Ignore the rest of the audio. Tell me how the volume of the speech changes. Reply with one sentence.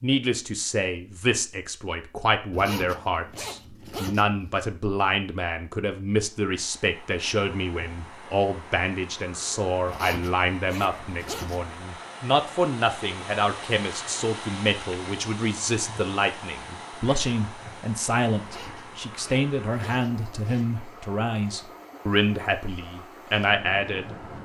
The loudness of the speech stays about the same.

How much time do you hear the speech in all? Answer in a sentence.
The speech can be heard for 24 seconds in total.